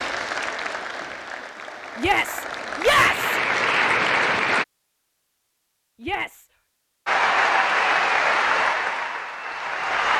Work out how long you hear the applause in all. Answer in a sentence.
The applause can be heard for 8 seconds in total.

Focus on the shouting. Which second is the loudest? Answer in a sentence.
The loudest moment of the shouting is at 3 seconds.